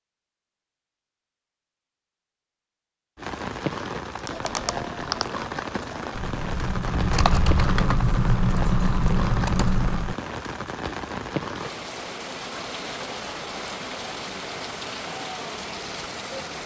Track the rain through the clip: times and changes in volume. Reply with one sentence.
The rain can be heard from 3.1 to 16.6 s, at a steady volume.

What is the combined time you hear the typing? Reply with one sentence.
The typing can be heard for 6 seconds in total.